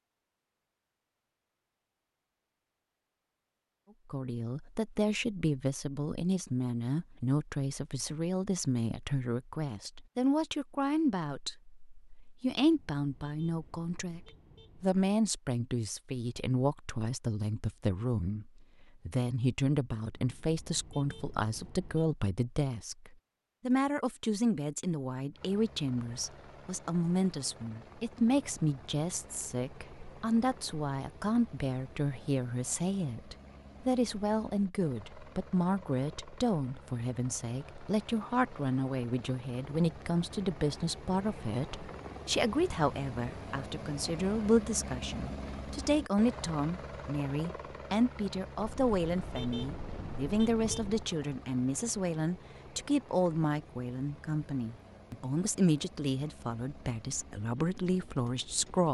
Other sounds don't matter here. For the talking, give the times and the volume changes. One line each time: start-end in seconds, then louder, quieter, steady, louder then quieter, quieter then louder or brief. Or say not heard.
4.1-58.8 steady.